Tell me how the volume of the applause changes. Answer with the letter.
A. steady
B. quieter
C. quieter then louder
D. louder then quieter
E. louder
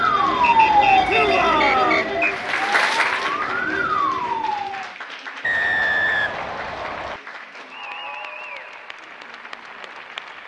D.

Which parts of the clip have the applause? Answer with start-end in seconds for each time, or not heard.
0.1-10.4.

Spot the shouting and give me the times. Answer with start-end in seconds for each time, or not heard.
1.1-2.1.